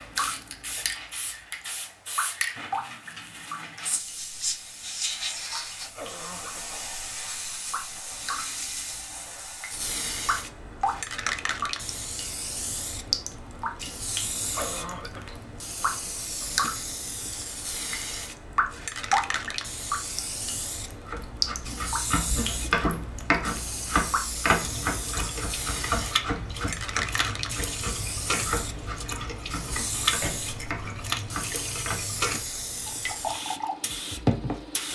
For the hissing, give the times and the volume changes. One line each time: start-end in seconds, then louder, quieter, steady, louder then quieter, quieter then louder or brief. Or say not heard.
0.0-34.9 steady.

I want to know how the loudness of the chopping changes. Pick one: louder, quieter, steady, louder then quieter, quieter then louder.
quieter.